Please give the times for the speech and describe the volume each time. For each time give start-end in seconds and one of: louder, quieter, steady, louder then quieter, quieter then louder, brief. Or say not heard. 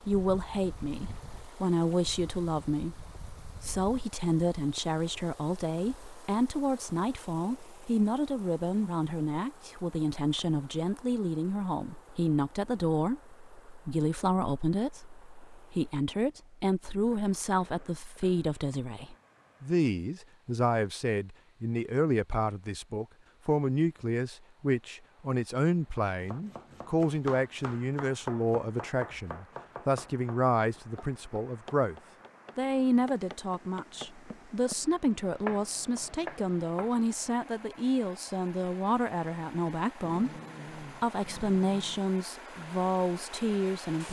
0.1-31.9 steady
32.5-44.0 steady.